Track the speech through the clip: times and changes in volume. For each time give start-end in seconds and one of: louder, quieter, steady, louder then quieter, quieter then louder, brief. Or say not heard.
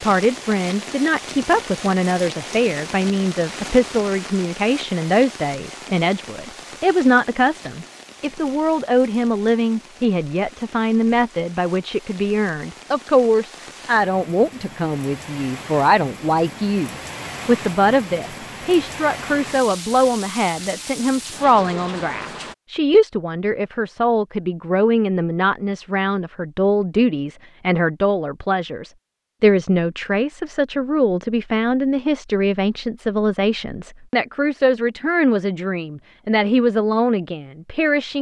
0.0-38.1 steady.